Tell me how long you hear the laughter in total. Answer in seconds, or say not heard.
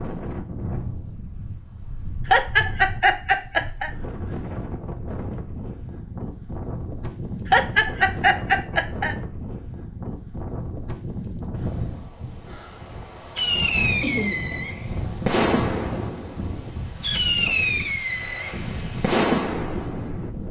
4 s.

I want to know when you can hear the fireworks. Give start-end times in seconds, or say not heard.
13.3-20.3.